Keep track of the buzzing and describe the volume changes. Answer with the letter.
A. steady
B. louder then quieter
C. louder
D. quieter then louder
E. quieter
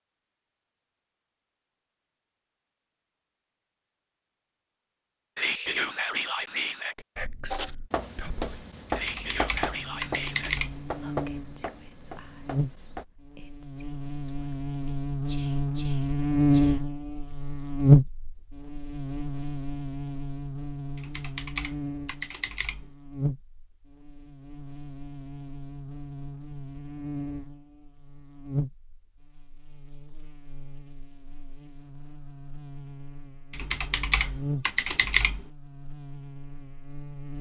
B.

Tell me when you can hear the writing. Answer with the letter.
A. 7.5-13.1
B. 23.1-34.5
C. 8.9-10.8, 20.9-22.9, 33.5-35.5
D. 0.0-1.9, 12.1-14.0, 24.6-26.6
A.